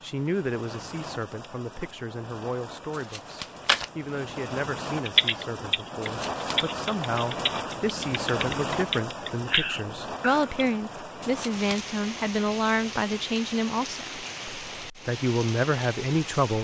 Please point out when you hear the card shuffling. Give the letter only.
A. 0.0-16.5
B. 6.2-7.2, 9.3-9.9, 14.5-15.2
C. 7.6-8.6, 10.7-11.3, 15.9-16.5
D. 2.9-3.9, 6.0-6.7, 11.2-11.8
D.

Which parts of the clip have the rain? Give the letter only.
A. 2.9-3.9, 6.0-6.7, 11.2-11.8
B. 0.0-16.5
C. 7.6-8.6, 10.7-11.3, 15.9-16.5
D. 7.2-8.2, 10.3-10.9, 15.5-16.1
B.